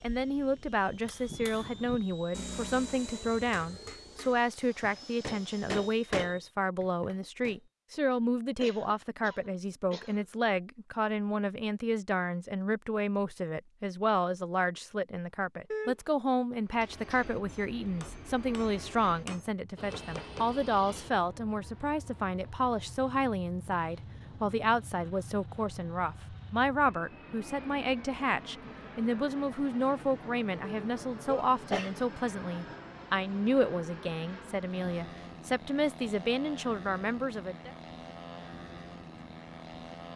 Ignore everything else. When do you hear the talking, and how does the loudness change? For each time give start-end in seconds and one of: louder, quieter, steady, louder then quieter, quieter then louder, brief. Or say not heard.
0.0-37.7 steady.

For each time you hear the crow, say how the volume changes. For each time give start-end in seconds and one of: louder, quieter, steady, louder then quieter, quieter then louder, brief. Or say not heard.
not heard.